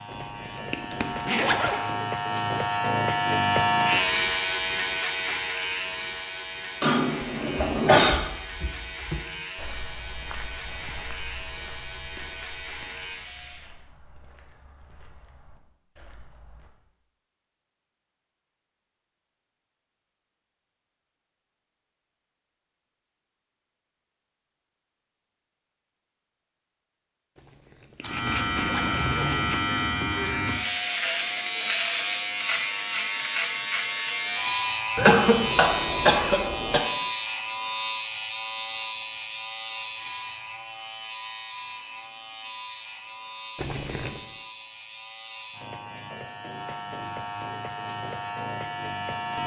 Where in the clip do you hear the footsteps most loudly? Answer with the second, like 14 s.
9 s.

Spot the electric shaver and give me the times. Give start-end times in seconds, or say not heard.
0.0-13.8, 28.0-49.4.